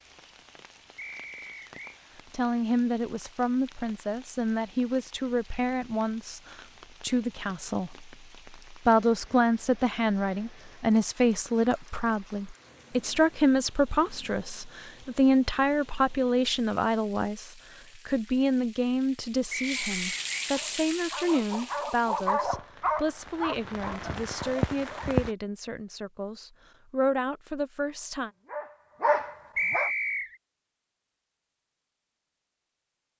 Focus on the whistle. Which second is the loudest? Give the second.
30 s.